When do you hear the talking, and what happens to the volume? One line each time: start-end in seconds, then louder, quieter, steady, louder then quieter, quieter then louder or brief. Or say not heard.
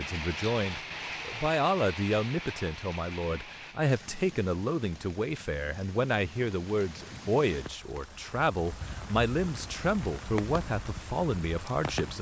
0.0-12.1 steady.